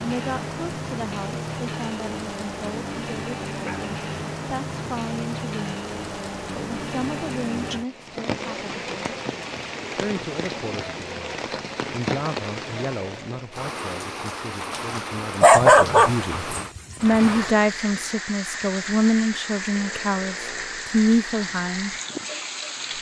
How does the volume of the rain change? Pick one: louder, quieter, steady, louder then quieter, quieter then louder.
steady.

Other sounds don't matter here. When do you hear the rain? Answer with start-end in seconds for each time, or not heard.
0.0-22.9.